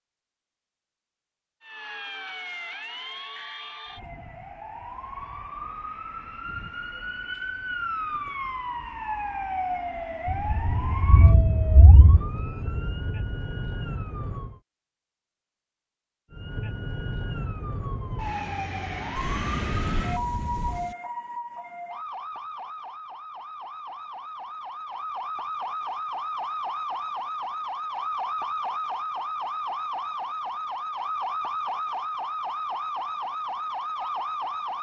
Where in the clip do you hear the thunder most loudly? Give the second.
11 s.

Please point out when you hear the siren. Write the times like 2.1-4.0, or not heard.
1.6-14.6, 16.3-34.7.